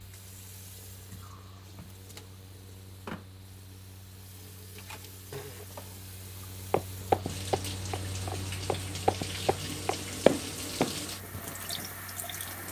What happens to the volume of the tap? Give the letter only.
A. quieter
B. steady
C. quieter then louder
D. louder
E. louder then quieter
D.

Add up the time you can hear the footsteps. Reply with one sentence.
The footsteps can be heard for 5 seconds in total.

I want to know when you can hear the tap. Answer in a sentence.
The tap can be heard from 0.0 to 12.6 s.